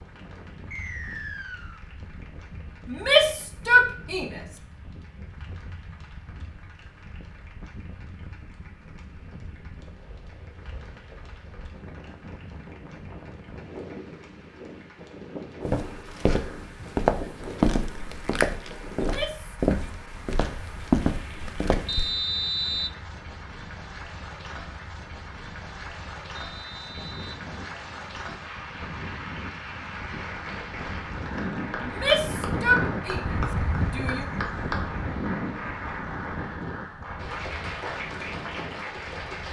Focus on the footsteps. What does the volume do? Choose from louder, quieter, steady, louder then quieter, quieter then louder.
steady.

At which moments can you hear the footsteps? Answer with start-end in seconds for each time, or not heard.
15.7-22.1.